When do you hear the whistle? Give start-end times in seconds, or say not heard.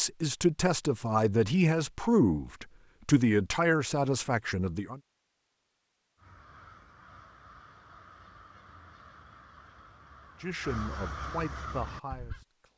not heard.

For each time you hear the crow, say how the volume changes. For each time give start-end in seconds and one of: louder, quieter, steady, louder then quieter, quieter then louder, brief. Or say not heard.
6.2-12.4 louder.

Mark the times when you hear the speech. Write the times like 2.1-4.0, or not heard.
0.0-5.0, 10.4-12.7.